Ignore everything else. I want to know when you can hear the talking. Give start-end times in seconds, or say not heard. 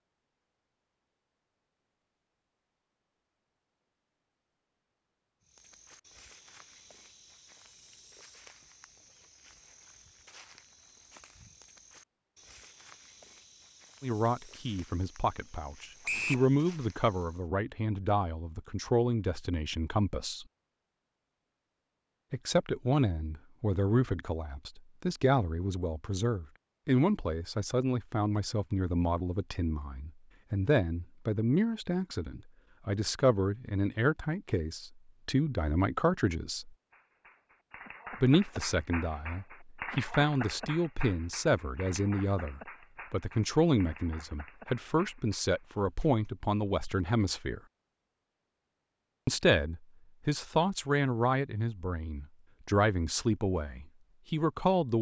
14.0-20.4, 22.3-36.8, 38.2-47.6, 49.2-54.9.